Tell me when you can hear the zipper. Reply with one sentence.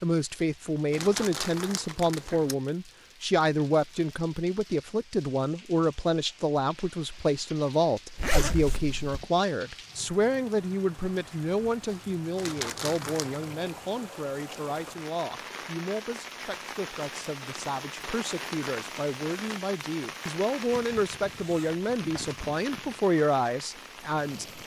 You can hear the zipper from 8.2 to 9.2 s and from 21.2 to 22.2 s.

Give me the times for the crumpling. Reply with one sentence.
You can hear the crumpling from 0.9 to 2.5 s and from 12.3 to 13.4 s.